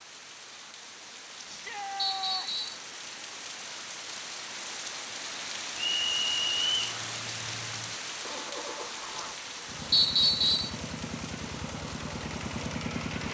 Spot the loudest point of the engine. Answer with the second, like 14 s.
13 s.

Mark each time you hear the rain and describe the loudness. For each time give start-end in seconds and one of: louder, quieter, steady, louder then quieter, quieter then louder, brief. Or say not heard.
0.0-13.3 louder then quieter.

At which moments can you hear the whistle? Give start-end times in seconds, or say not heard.
1.9-2.9, 5.8-6.8, 9.9-10.8.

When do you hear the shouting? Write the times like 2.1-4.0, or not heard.
1.4-2.7.